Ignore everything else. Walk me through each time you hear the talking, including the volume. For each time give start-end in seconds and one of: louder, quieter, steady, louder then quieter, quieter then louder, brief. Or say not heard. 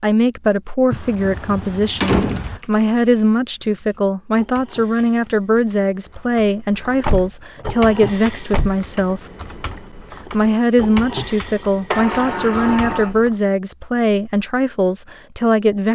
0.0-9.2 steady
10.3-15.9 steady.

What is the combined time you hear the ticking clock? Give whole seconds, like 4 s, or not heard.
not heard.